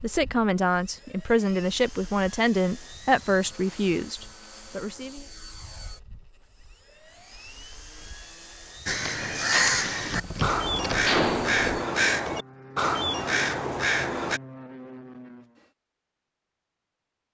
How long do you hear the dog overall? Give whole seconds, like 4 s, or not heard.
not heard.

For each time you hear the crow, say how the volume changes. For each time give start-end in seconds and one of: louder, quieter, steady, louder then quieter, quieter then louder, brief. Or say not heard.
8.8-14.4 steady.